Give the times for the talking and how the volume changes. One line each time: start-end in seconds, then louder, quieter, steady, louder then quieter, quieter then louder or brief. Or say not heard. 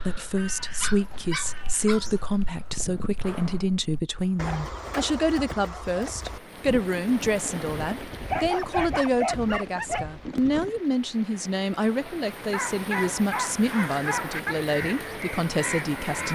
0.0-16.3 steady.